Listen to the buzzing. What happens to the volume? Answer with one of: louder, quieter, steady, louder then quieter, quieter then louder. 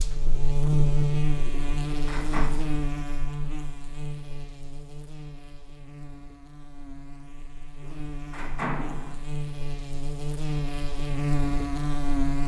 quieter then louder.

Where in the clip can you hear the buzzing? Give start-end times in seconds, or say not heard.
0.0-12.4.